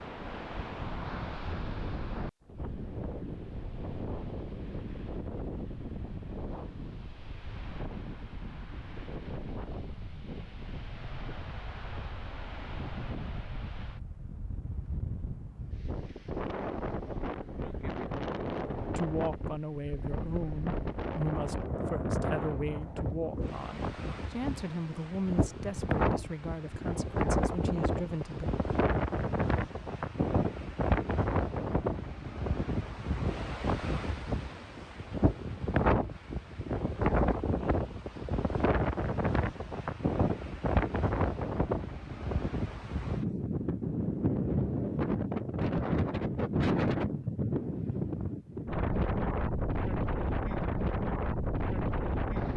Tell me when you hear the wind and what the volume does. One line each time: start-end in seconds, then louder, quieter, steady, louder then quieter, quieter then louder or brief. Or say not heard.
0.0-52.5 louder.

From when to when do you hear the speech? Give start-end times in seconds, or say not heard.
18.9-28.5.